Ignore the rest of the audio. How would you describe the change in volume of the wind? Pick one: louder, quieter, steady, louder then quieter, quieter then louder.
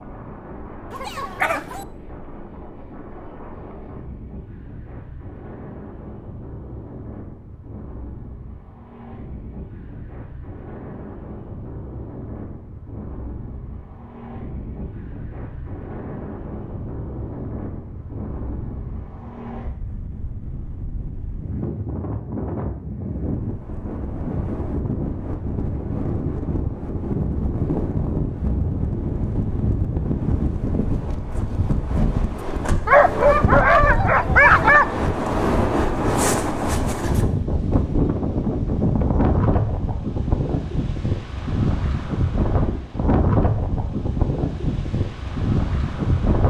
louder.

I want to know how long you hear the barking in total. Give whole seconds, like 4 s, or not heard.
3 s.